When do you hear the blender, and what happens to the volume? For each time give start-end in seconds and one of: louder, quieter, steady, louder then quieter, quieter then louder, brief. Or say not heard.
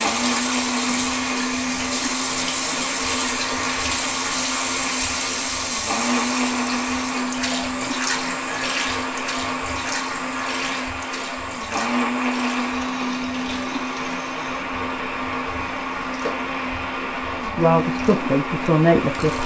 0.0-19.4 steady.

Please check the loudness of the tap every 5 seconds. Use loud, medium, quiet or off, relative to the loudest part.
loud, loud, medium, medium.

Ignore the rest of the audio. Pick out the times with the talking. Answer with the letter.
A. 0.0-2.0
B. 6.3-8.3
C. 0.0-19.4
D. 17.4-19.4
D.